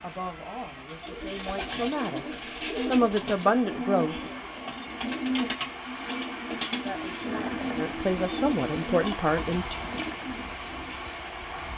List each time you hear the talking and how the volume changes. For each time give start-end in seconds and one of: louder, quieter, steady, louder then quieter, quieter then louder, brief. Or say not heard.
0.0-4.2 louder
6.8-9.8 brief.